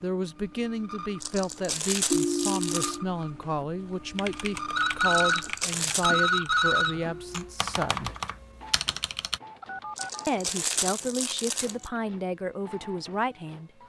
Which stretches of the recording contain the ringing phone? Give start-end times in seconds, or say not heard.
2.1-3.0, 4.8-7.0, 9.6-10.2.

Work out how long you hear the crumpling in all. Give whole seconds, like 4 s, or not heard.
5 s.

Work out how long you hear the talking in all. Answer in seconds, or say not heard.
12 s.